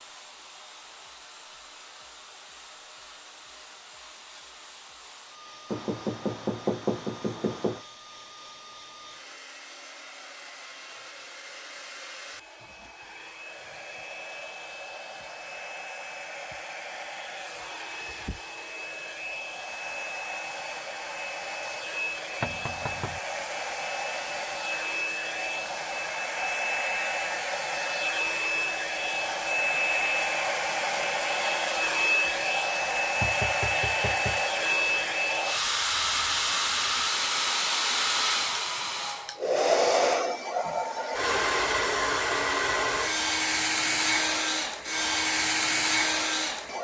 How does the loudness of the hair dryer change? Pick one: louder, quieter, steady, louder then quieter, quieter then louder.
louder.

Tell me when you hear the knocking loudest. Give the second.
7 s.